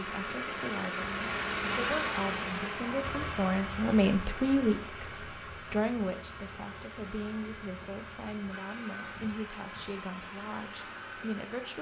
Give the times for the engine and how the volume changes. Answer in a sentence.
The engine can be heard from 0.0 to 11.7 s, getting quieter.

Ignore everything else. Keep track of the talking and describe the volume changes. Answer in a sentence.
The volume of the talking goes up, then down.